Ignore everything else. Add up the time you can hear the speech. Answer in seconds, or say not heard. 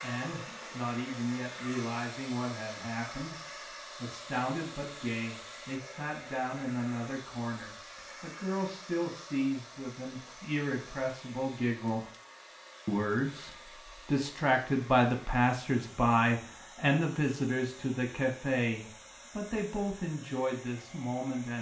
21 s.